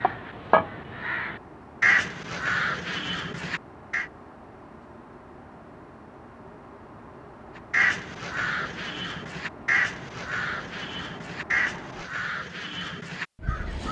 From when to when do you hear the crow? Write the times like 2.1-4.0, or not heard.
0.0-4.0, 7.7-13.8.